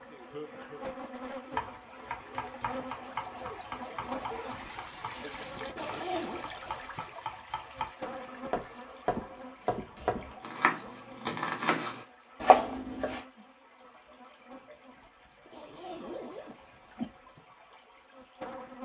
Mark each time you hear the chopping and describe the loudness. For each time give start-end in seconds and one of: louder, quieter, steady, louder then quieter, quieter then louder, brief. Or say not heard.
1.5-13.2 quieter then louder.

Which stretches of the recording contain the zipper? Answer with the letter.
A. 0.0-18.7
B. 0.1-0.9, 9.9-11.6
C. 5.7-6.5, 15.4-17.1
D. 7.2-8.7
C.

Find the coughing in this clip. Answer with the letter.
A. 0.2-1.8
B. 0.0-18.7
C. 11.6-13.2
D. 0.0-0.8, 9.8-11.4
A.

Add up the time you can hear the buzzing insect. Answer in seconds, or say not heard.
19 s.